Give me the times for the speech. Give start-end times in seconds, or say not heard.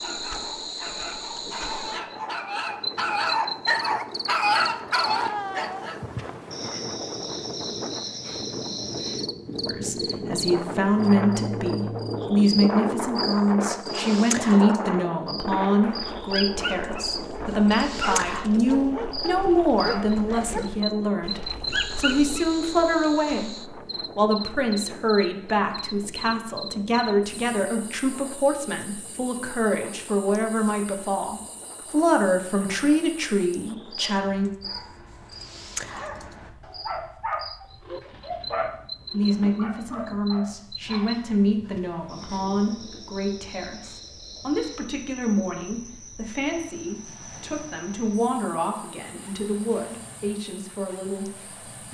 9.7-34.5, 39.1-51.8.